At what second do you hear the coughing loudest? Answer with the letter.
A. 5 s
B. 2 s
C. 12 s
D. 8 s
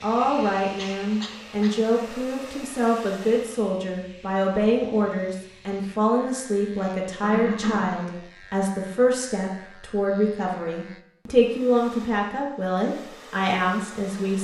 D.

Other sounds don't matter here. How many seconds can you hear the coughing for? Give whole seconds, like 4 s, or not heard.
2 s.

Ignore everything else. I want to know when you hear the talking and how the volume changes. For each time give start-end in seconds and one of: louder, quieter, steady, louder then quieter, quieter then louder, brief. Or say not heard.
0.0-14.3 steady.